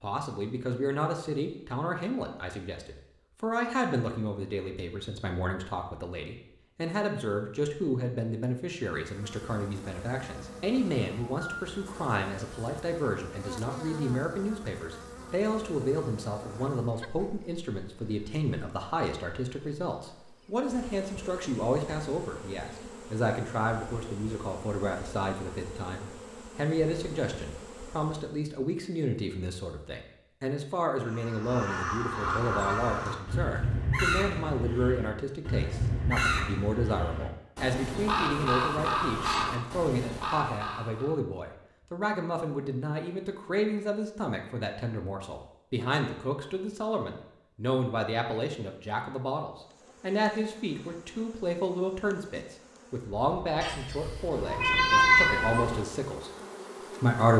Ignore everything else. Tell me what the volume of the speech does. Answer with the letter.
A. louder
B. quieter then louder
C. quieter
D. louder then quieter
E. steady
E.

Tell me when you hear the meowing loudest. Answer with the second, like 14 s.
55 s.